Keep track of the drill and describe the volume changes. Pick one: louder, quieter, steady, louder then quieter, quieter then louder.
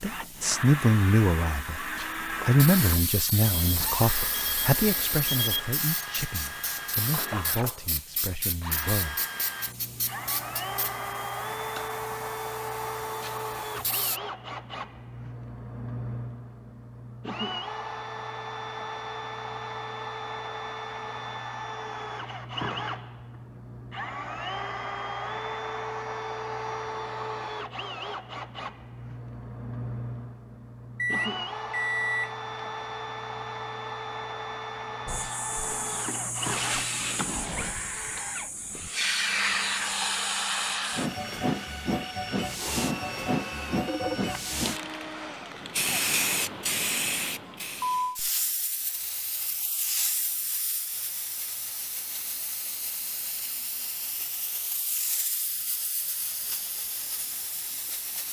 steady.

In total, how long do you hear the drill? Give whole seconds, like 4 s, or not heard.
46 s.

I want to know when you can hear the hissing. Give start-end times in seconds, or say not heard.
0.0-14.2, 35.0-58.2.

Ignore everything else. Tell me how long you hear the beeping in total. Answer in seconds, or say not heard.
4 s.